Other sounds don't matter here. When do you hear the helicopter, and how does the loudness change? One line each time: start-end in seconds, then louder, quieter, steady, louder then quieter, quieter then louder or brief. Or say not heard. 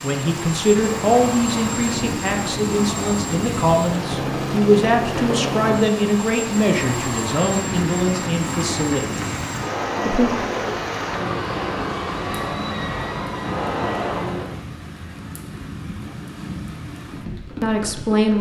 0.0-14.6 steady.